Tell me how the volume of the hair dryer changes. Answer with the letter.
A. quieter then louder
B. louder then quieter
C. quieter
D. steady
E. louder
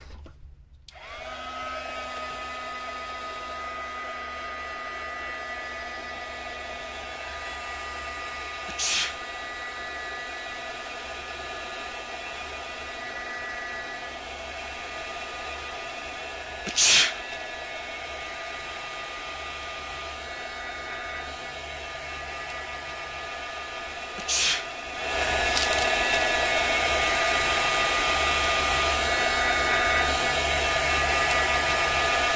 E.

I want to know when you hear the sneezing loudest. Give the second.
17 s.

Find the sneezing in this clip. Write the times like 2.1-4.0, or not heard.
8.7-9.2, 16.6-17.2, 24.1-24.7.